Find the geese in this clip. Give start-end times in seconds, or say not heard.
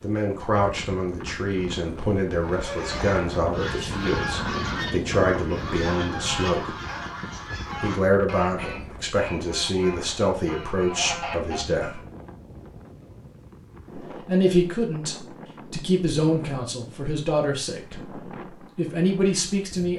2.4-12.0.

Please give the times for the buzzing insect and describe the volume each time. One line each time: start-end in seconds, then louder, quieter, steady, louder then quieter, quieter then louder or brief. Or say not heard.
not heard.